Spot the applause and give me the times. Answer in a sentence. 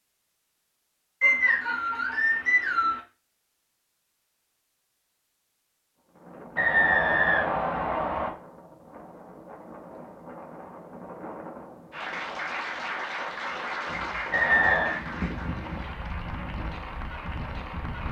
The applause can be heard from 11.9 to 18.0 s.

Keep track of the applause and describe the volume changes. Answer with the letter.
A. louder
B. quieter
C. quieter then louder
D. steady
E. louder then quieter
B.